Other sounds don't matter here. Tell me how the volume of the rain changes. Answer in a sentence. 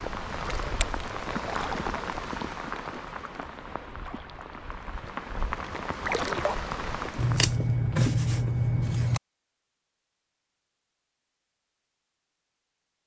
The loudness of the rain goes down, then up.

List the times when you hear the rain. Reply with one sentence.
You can hear the rain from 0.0 to 7.5 s.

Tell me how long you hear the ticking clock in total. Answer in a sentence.
You can't hear the ticking clock here.